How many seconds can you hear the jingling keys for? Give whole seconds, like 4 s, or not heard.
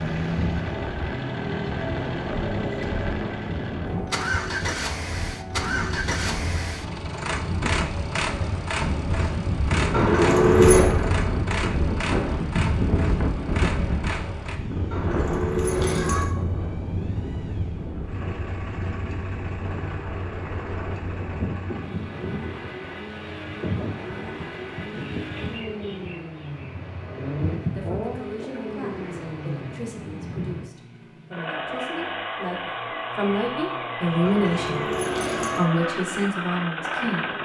4 s.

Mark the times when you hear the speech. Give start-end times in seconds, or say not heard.
27.6-34.8, 35.5-37.3.